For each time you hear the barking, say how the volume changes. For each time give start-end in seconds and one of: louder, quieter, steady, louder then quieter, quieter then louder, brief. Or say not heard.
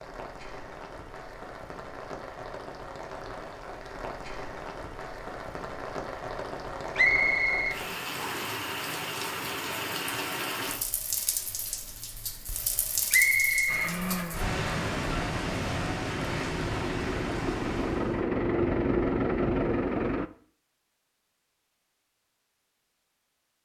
not heard.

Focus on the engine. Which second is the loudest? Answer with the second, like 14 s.
19 s.